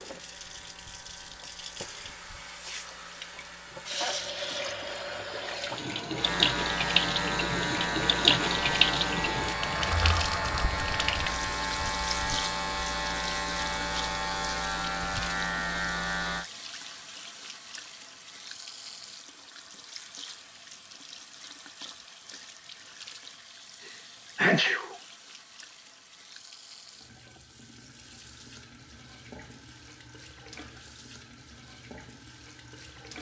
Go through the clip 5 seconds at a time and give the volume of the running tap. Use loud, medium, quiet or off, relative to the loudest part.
medium, loud, medium, quiet, quiet, quiet, quiet.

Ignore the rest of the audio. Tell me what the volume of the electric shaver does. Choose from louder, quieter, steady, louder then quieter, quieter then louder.
louder.